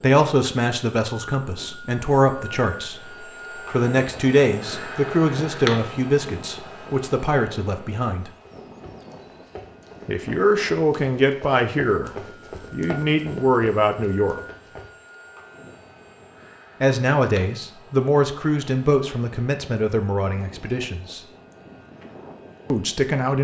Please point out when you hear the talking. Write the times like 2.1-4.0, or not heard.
0.0-8.3, 10.1-12.1, 12.7-14.4, 16.8-21.2, 22.7-23.3.